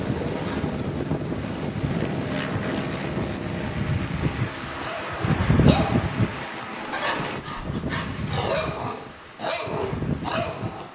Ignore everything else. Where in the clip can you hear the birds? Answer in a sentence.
The birds can't be heard in this clip.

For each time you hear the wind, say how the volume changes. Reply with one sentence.
The wind can be heard from 0.0 to 10.9 s, getting louder then quieter.